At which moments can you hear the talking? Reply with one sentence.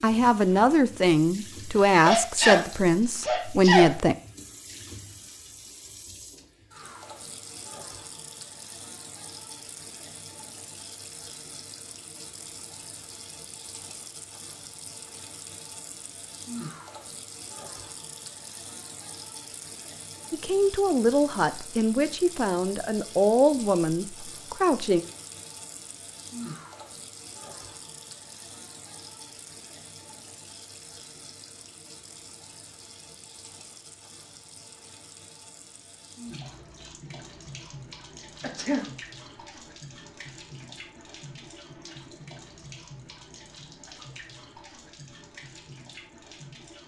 You can hear the talking from 0.0 to 4.2 s and from 20.3 to 25.0 s.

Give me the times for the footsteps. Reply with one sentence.
You can't hear the footsteps here.